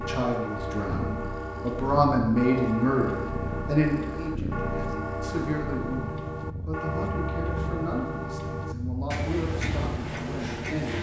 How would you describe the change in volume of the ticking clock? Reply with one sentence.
The loudness of the ticking clock stays about the same.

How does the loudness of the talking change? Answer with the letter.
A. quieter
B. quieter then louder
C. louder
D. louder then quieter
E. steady
A.